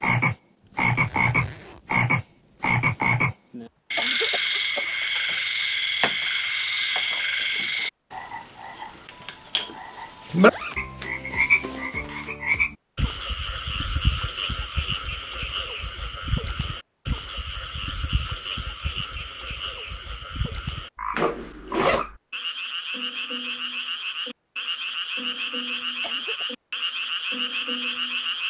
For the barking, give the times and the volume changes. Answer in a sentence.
The barking can't be heard in this clip.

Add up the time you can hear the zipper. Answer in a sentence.
You can hear the zipper for 4 seconds altogether.